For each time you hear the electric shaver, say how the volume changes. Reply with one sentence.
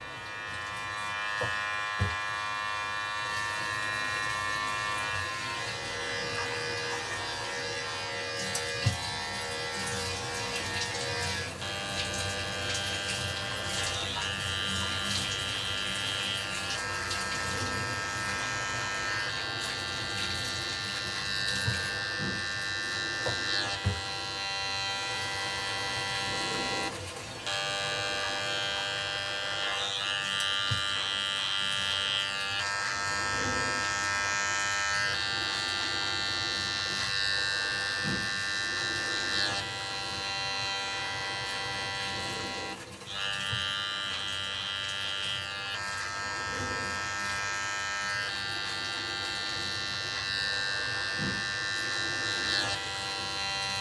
The electric shaver can be heard from 0.0 to 53.7 s, at a steady volume.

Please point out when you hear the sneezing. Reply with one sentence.
The sneezing can't be heard in this clip.